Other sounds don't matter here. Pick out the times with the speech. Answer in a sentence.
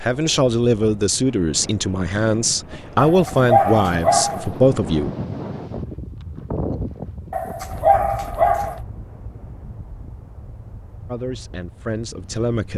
The speech can be heard from 0.0 to 5.1 s and from 11.1 to 12.7 s.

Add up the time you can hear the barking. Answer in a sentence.
The barking can be heard for 3 seconds in total.